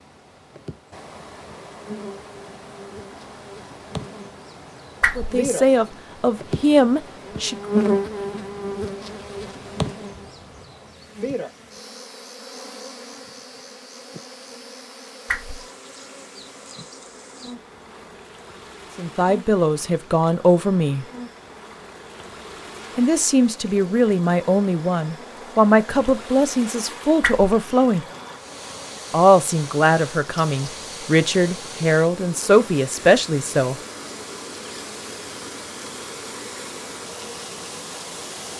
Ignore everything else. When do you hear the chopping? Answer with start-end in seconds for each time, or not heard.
not heard.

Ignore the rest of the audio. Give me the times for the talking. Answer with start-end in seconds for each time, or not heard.
5.2-7.5, 18.9-21.1, 22.9-28.1, 29.1-33.8.